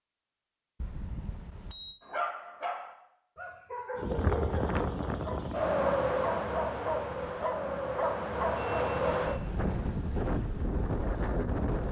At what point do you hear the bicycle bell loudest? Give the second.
9 s.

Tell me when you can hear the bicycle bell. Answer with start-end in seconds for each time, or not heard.
0.8-2.0, 8.6-9.5.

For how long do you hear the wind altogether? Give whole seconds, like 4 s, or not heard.
8 s.